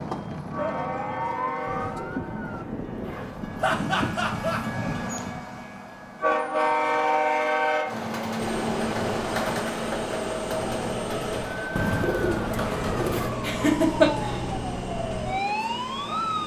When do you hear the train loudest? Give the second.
7 s.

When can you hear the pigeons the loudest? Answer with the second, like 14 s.
12 s.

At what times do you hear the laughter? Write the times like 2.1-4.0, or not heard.
3.6-4.6, 13.4-14.4.